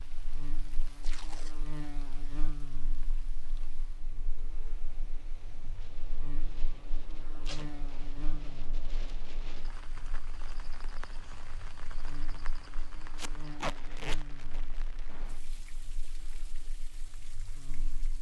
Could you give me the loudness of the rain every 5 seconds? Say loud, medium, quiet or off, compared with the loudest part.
medium, loud, loud, medium.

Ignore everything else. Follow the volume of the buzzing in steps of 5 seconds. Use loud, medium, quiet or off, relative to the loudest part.
loud, loud, loud, medium.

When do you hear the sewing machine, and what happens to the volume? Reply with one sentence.
The sewing machine can't be heard in this clip.